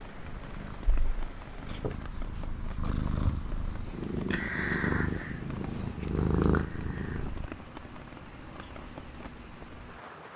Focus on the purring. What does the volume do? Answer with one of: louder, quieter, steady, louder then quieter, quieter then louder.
louder.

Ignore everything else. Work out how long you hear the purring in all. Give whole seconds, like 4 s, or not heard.
7 s.